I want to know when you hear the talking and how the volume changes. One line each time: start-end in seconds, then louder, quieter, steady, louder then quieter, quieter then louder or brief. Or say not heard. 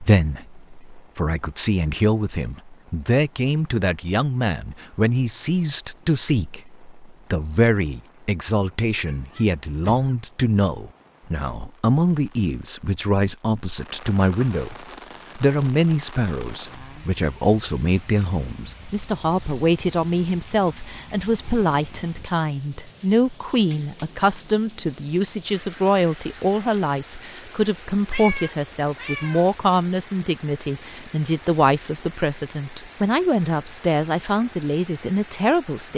0.0-35.9 steady.